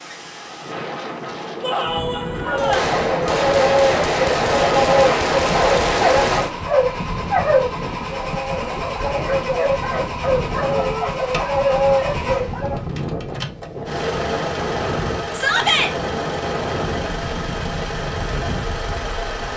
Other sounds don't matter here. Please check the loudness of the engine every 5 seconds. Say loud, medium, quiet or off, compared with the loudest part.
off, loud, loud, loud.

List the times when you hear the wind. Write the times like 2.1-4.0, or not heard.
0.0-19.5.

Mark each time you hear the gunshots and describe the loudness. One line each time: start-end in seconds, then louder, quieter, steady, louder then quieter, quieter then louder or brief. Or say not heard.
2.5-6.5 steady.